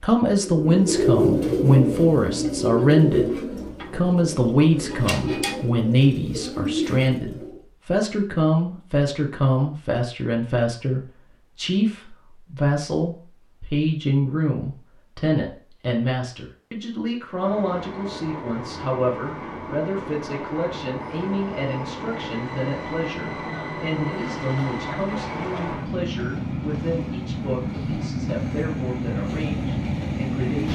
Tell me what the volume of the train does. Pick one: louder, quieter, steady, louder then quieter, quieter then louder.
louder.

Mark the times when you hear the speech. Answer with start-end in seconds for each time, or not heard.
0.0-30.6.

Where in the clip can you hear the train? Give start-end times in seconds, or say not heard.
17.3-30.6.